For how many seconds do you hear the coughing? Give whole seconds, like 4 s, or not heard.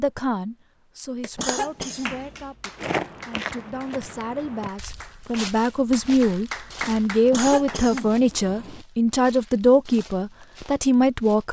3 s.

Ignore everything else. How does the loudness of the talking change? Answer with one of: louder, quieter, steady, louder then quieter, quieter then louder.
louder.